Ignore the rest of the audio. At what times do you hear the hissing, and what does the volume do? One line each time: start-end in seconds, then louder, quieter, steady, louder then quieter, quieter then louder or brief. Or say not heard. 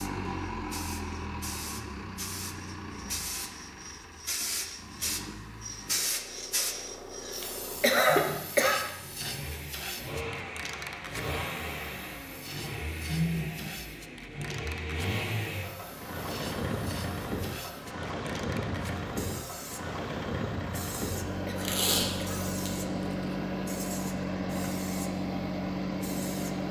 0.0-26.6 quieter.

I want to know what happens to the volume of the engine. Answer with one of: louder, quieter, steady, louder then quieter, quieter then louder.
louder.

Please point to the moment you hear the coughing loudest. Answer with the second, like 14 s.
8 s.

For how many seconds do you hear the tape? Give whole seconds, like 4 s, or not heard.
2 s.